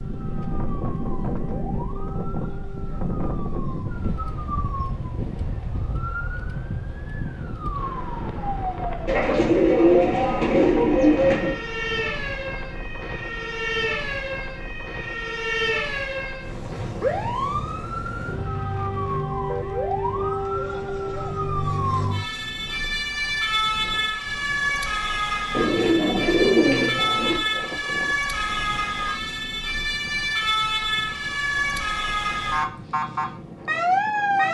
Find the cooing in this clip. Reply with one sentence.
The cooing can be heard from 9.1 to 11.6 s and from 25.5 to 27.4 s.